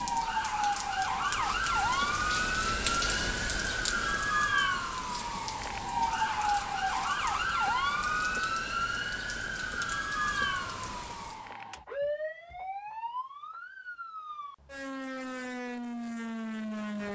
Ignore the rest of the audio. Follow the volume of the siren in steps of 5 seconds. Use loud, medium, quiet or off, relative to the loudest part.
loud, loud, medium, medium.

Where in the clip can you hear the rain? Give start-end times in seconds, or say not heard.
0.0-11.6.